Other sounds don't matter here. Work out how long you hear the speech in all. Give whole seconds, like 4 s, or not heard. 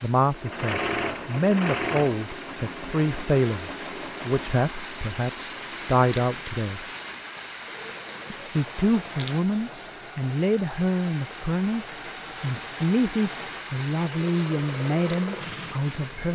15 s.